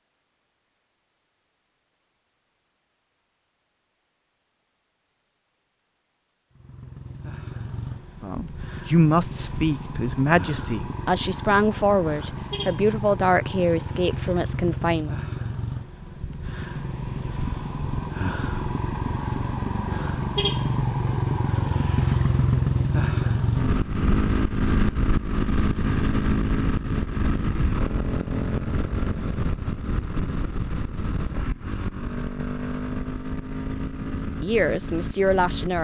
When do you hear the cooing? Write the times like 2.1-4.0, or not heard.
not heard.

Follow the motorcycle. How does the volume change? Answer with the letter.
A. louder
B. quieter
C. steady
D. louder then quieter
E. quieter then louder
D.